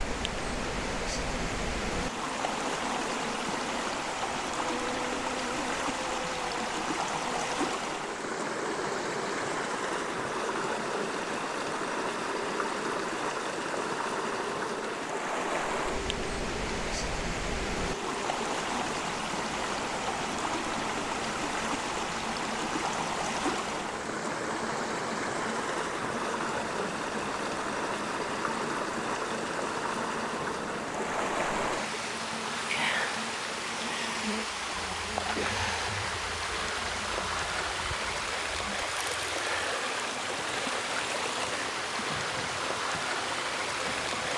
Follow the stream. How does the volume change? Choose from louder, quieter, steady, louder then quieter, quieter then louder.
steady.